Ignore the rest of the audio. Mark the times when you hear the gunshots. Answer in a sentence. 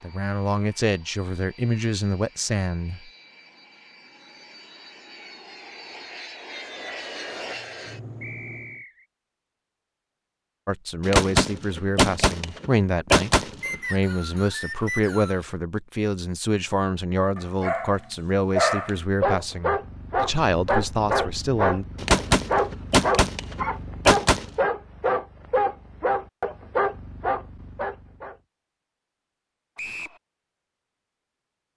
You can hear the gunshots from 11.1 to 13.8 s and from 22.0 to 24.5 s.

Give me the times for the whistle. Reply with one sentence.
The whistle can be heard from 8.2 to 9.1 s, from 13.6 to 15.4 s and from 29.8 to 30.2 s.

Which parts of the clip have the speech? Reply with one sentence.
You can hear the speech from 0.0 to 3.1 s and from 10.7 to 21.9 s.